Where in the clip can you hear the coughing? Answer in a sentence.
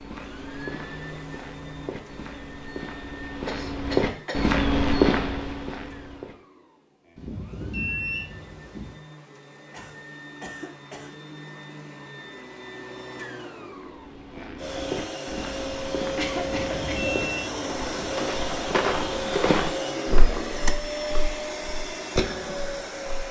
The coughing can be heard from 3.5 to 4.5 s, from 9.7 to 11.2 s and from 16.1 to 17.1 s.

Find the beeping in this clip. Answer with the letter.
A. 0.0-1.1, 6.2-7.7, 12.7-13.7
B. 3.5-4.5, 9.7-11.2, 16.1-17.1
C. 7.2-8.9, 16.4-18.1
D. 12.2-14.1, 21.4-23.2
C.